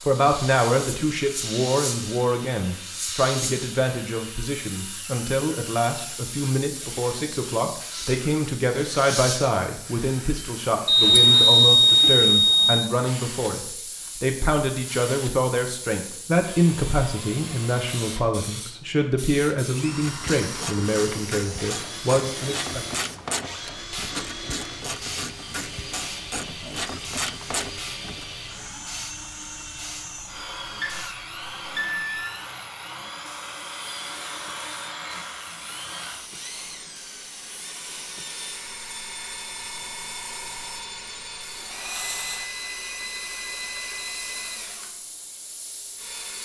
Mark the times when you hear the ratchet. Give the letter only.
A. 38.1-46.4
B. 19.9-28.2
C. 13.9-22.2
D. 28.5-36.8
B.